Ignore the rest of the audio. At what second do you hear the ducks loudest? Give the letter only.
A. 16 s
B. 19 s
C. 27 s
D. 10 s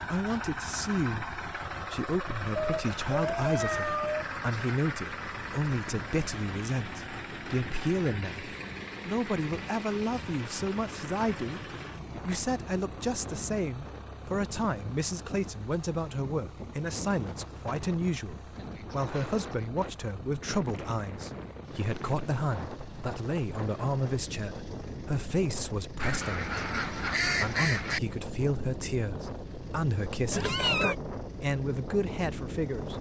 C.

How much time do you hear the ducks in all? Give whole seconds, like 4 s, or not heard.
2 s.